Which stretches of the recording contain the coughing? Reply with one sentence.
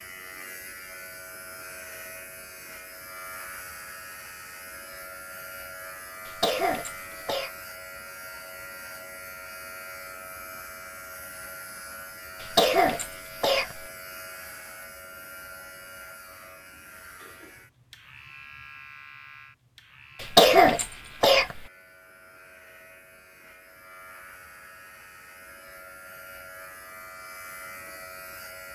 You can hear the coughing from 6.2 to 7.5 s, from 12.4 to 13.8 s and from 20.2 to 21.6 s.